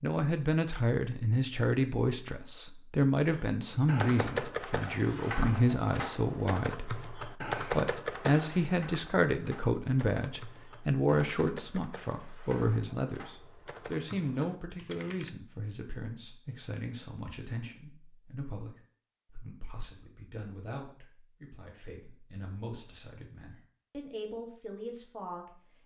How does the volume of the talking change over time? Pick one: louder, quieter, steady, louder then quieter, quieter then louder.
quieter.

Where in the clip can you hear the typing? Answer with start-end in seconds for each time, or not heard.
3.3-15.3.